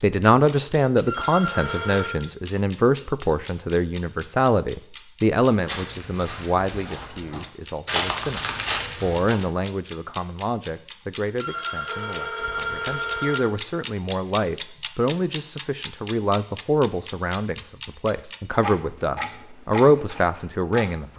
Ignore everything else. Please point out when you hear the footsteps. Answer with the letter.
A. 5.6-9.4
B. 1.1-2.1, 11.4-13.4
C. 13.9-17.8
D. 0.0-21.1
A.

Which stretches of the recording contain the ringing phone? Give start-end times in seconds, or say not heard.
1.1-2.1, 11.4-13.4.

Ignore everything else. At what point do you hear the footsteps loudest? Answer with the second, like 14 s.
8 s.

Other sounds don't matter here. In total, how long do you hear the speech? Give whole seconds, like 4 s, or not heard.
21 s.